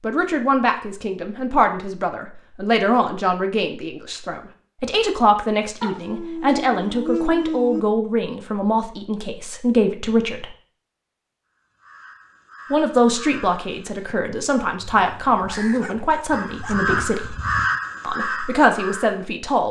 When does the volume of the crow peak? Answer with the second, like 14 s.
18 s.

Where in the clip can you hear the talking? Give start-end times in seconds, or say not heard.
0.0-10.4, 12.7-17.4, 18.0-19.6.